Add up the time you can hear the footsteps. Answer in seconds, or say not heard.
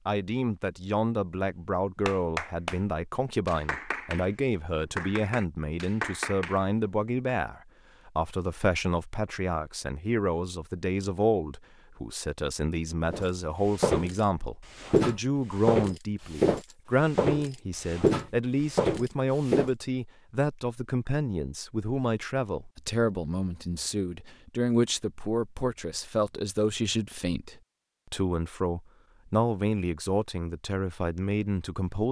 7 s.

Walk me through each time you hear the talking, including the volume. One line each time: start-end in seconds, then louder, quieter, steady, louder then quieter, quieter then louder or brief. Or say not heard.
0.1-32.0 steady.